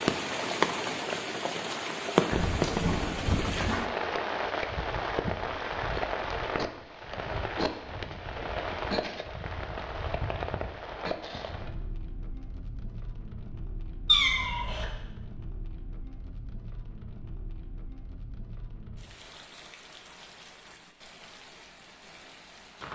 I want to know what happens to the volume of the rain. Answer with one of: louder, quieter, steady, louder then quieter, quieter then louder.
quieter.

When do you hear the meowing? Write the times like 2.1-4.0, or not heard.
2.3-3.8, 14.1-14.8.